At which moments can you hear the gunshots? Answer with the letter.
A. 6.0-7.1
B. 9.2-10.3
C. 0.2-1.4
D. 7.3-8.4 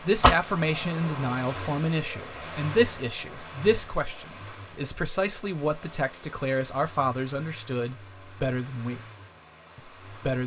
C.